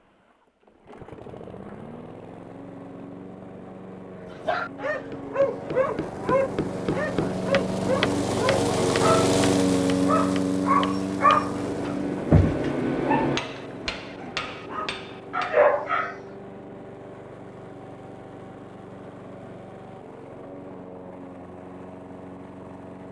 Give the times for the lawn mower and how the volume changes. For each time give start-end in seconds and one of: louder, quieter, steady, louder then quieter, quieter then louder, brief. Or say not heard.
0.0-23.0 louder then quieter.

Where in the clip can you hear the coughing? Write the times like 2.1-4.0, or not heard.
not heard.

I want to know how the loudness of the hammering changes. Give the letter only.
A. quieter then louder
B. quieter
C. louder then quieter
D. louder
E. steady
C.